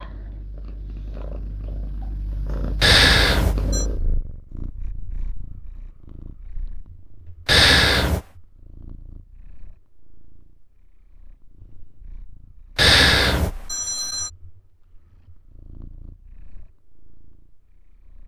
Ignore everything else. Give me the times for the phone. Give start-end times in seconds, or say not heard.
2.8-3.9, 7.5-8.2, 12.8-14.3.